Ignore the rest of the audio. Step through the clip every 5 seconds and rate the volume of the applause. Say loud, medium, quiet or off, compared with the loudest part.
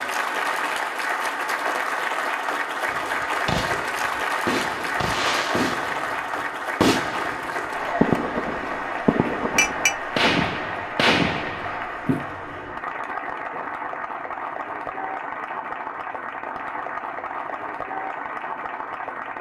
loud, loud, medium, medium.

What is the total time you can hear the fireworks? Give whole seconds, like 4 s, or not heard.
9 s.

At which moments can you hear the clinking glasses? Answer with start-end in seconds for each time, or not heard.
9.6-10.0.